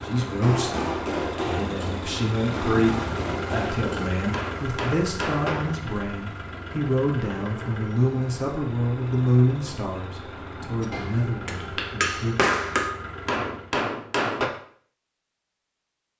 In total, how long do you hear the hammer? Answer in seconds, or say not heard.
9 s.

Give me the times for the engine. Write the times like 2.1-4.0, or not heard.
0.0-13.8.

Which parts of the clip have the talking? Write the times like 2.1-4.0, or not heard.
0.0-12.3.